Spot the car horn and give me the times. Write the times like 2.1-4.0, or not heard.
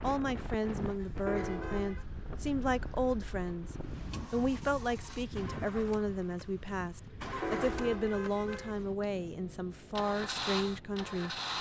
1.2-2.0, 7.4-8.8.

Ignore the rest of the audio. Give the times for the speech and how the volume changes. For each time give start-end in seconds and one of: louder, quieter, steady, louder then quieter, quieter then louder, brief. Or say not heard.
0.0-11.3 steady.